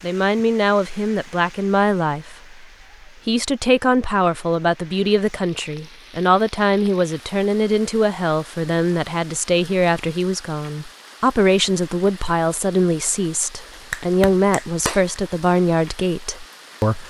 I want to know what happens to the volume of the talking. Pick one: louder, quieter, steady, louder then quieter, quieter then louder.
steady.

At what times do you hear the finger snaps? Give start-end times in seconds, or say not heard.
13.7-15.1.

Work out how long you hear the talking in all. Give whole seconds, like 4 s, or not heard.
17 s.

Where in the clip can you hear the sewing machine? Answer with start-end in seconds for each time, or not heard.
not heard.